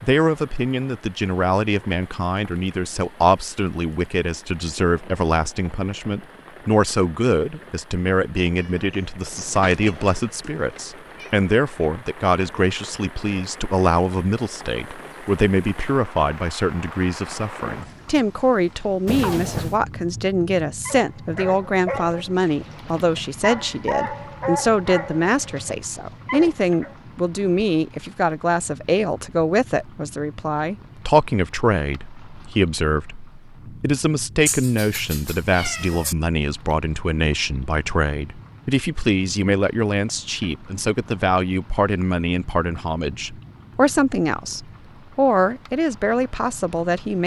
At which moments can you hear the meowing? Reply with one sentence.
You can hear the meowing from 8.6 to 11.3 s, from 19.1 to 19.8 s and from 34.5 to 36.1 s.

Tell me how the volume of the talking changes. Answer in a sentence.
The volume of the talking stays about the same.